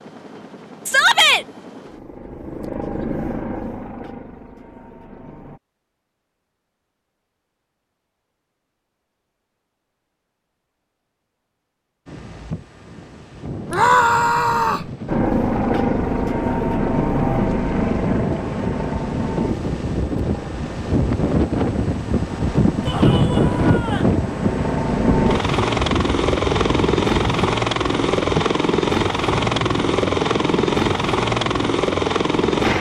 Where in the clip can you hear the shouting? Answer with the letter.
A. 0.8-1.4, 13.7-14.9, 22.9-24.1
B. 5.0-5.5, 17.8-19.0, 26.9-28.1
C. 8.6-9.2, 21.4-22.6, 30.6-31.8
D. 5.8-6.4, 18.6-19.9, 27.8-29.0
A.